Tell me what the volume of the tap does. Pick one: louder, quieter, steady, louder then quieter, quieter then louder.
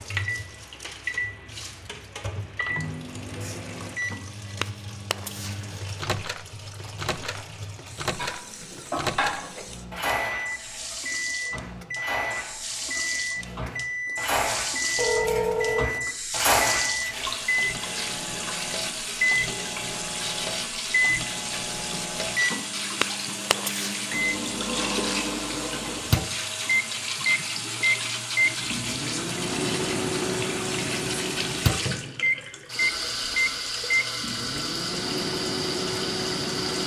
louder.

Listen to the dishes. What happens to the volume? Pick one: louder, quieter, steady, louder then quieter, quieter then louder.
quieter then louder.